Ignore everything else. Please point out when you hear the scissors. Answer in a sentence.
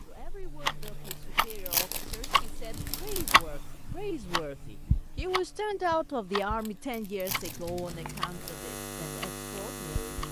You can hear the scissors from 7.2 to 8.3 s.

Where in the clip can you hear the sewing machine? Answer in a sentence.
The sewing machine can't be heard in this clip.